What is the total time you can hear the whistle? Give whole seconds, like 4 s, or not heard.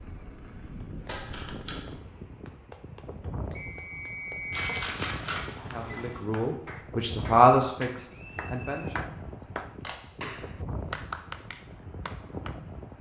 2 s.